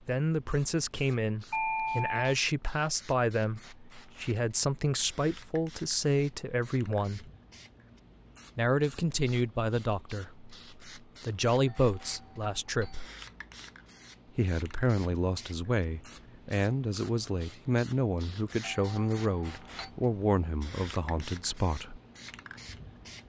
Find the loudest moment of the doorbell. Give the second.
2 s.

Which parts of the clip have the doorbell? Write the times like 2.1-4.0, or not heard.
1.5-2.3, 11.7-13.1, 18.6-19.9.